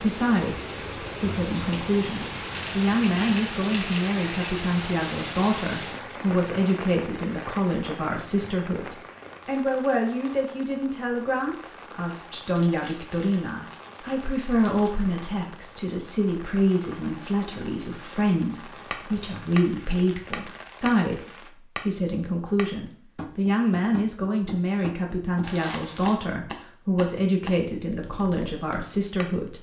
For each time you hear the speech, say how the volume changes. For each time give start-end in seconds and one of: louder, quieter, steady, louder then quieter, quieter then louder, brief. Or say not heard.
0.0-29.5 steady.